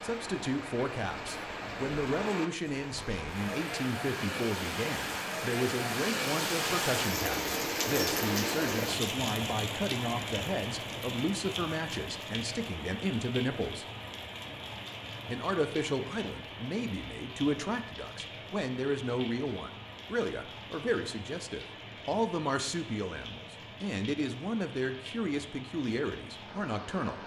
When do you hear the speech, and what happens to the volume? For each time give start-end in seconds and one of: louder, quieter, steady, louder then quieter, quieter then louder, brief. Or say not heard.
0.0-13.8 steady
15.2-27.2 steady.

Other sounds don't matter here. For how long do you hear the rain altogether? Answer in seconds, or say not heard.
27 s.